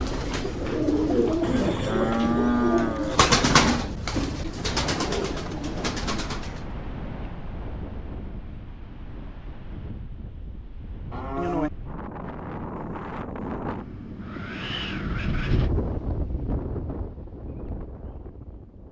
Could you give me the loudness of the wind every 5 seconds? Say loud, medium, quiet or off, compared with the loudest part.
medium, medium, loud, loud.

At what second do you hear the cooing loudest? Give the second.
3 s.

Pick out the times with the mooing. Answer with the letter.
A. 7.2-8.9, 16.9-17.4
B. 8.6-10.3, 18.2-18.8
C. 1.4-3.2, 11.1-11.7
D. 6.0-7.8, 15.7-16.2
C.